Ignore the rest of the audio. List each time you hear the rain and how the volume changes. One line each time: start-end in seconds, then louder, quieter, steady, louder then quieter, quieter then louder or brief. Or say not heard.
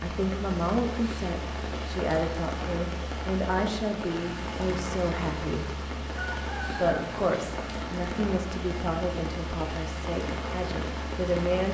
0.0-11.6 steady.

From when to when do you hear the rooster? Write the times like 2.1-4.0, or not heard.
6.1-7.0.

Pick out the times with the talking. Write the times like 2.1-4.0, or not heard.
0.0-5.8, 6.7-11.6.